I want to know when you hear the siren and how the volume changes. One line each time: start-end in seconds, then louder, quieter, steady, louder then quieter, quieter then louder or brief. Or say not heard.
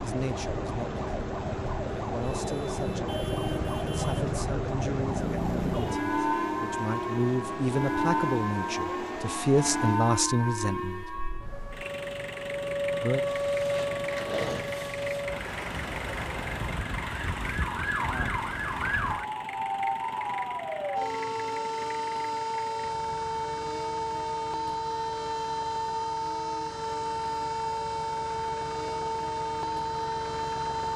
0.0-30.9 steady.